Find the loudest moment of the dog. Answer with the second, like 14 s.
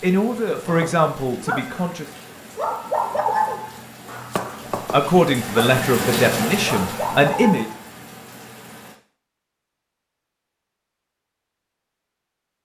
3 s.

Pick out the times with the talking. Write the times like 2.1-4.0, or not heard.
0.0-2.1, 4.9-7.7.